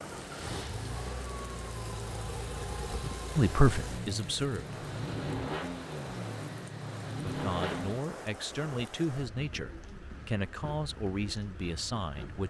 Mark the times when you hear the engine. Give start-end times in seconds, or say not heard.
0.0-8.1.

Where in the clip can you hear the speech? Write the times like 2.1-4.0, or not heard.
3.4-4.8, 7.2-12.4.